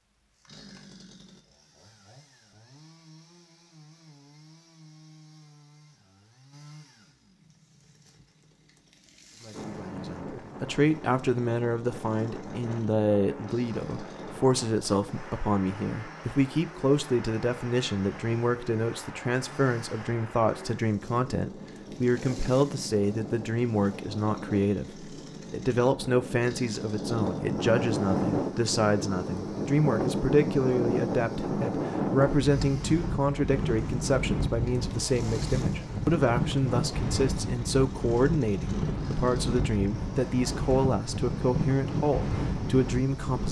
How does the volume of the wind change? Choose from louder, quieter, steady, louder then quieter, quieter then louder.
louder.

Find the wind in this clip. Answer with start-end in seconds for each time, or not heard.
9.5-43.4.